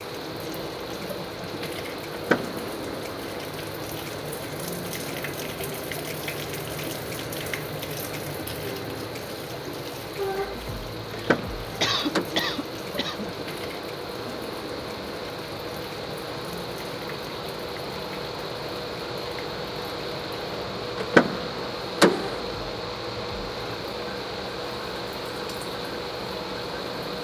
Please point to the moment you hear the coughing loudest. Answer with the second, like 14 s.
12 s.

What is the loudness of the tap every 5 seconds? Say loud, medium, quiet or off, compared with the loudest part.
loud, loud, loud, medium, medium, medium.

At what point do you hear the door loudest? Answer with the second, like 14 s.
21 s.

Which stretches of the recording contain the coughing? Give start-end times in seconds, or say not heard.
11.1-13.3.